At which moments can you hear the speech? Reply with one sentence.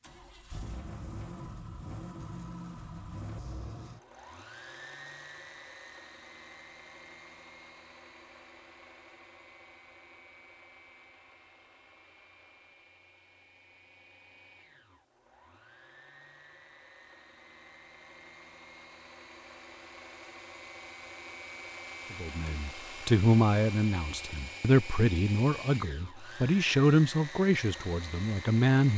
You can hear the speech from 22.1 to 28.9 s.